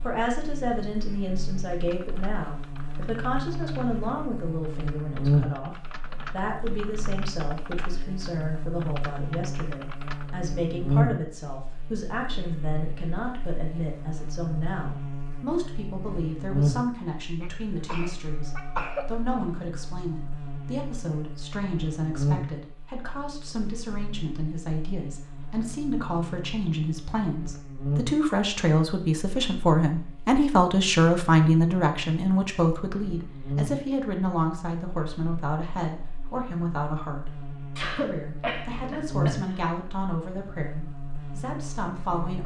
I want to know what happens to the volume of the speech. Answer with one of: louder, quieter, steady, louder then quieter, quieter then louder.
louder then quieter.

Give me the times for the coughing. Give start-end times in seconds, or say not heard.
17.4-19.1, 37.8-39.6.